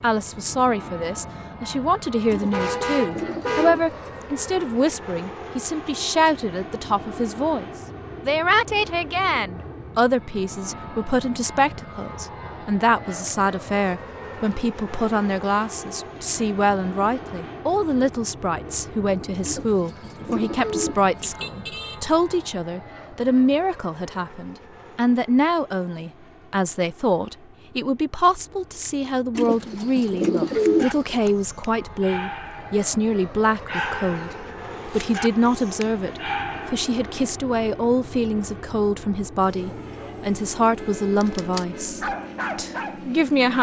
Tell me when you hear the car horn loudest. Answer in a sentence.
The loudest moment of the car horn is at 3 seconds.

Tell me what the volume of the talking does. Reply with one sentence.
The loudness of the talking stays about the same.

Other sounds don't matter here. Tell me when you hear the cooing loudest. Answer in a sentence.
The volume of the cooing peaks at 31 seconds.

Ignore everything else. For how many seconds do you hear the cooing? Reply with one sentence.
The cooing can be heard for 6 seconds in total.